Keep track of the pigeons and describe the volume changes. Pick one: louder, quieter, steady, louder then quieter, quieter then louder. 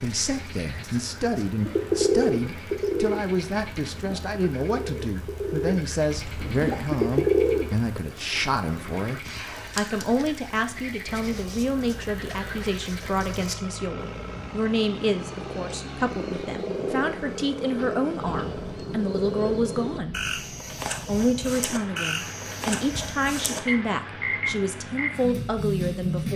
quieter then louder.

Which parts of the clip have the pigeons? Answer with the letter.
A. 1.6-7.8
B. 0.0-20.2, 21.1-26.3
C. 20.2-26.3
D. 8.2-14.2
A.